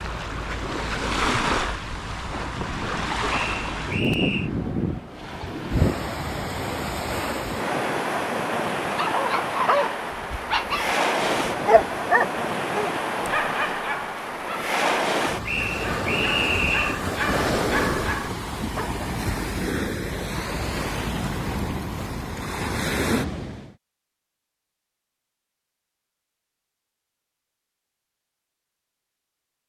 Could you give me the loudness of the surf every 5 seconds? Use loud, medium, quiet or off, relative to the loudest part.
loud, loud, loud, loud, loud, off.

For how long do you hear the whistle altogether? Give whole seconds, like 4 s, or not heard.
3 s.